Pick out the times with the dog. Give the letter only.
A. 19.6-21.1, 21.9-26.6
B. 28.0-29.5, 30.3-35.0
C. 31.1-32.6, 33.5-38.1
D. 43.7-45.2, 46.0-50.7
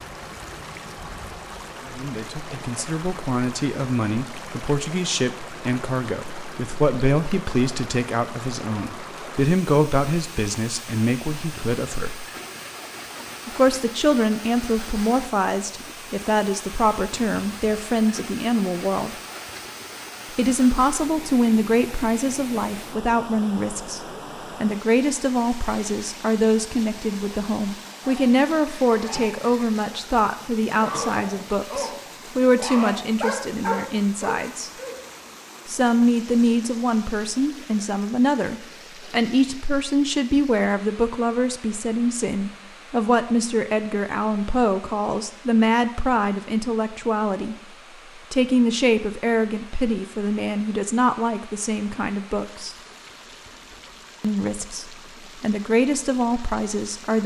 B.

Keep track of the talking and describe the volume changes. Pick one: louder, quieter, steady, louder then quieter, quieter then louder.
steady.